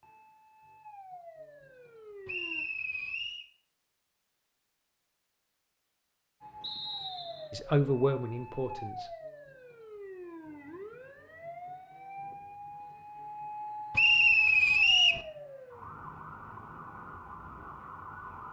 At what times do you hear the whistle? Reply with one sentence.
The whistle can be heard from 2.2 to 3.5 s, from 6.6 to 7.5 s and from 13.9 to 15.2 s.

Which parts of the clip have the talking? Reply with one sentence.
You can hear the talking from 7.5 to 9.1 s.